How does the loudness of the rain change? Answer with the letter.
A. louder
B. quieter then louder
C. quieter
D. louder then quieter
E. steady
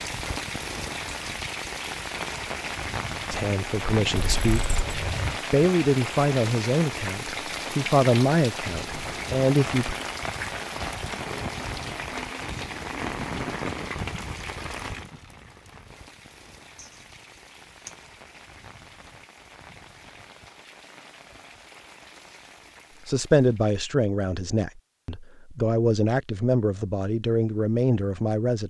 C.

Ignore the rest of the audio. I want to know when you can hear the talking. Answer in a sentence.
The talking can be heard from 3.3 to 4.8 s, from 5.5 to 9.9 s and from 23.1 to 28.6 s.